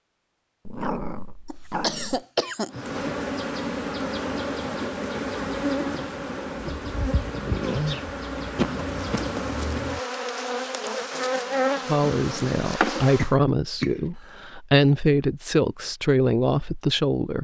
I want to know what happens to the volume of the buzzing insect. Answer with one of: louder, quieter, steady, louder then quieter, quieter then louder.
steady.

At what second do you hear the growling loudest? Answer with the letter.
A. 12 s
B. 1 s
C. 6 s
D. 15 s
B.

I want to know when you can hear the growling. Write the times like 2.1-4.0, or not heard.
0.7-2.2, 11.3-12.6.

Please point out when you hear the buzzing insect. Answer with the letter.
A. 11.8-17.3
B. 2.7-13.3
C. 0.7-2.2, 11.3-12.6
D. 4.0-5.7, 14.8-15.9
B.